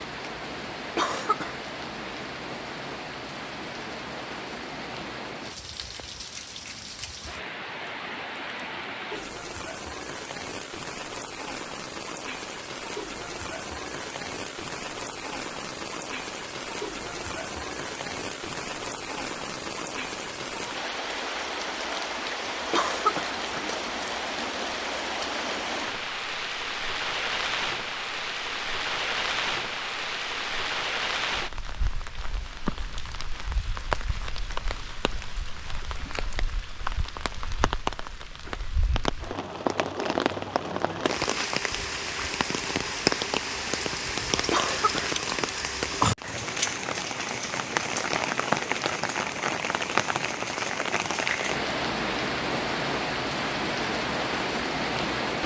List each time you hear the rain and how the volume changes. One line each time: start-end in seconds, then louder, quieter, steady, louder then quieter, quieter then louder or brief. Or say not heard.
0.0-55.4 louder.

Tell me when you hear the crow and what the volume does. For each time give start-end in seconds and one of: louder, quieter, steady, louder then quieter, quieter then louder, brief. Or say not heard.
not heard.